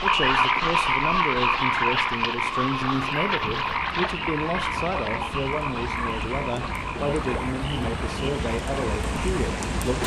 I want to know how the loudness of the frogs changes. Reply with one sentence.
The volume of the frogs goes down.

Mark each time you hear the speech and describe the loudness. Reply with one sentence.
The speech can be heard from 0.0 to 10.0 s, at a steady volume.